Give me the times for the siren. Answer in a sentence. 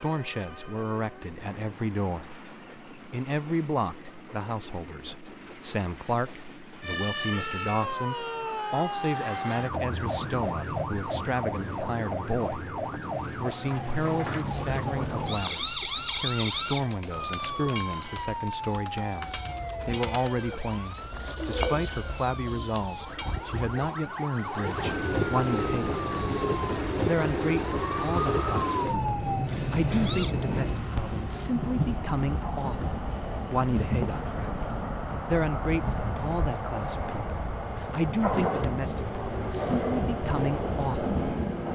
The siren can be heard from 6.8 to 30.4 s.